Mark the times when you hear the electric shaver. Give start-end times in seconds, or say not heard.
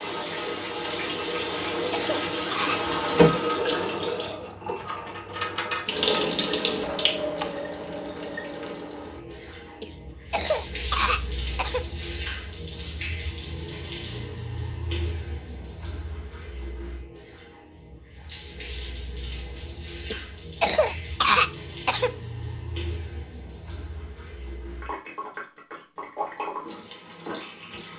not heard.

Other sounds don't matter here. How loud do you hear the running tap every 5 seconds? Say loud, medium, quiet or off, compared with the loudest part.
loud, loud, medium, quiet, quiet, medium.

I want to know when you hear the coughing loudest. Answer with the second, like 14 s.
21 s.